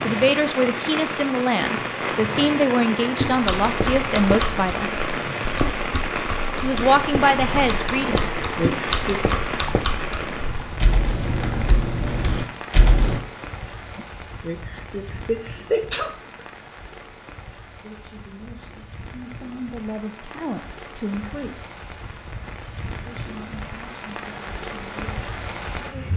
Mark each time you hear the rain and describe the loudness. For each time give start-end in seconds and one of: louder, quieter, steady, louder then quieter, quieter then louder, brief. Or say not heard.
0.0-26.1 quieter then louder.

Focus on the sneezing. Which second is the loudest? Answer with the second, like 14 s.
16 s.